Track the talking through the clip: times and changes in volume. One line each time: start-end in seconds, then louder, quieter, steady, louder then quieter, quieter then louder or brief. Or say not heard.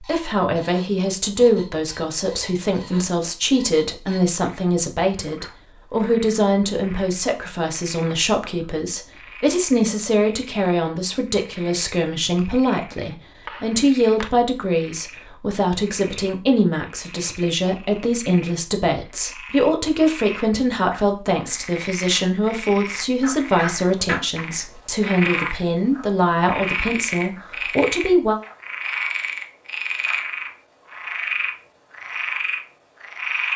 0.0-28.4 steady.